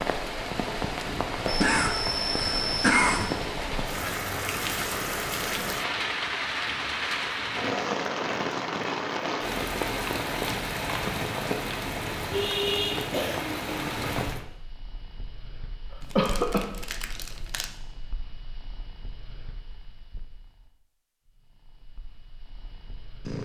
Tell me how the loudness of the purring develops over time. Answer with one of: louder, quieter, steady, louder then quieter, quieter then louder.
quieter.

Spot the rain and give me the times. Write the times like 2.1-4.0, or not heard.
0.0-14.4.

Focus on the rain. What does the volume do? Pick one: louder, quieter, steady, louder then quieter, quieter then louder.
steady.